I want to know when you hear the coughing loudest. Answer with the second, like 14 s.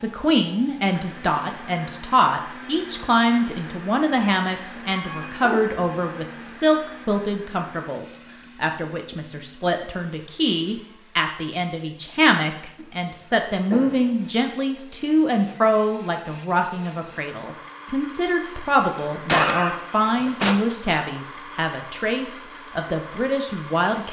19 s.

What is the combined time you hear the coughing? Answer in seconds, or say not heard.
3 s.